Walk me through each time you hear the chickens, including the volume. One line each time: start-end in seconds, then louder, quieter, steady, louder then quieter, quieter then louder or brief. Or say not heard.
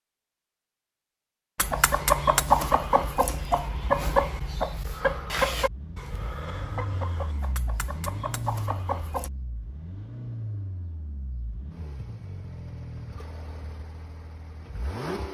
1.6-9.3 quieter.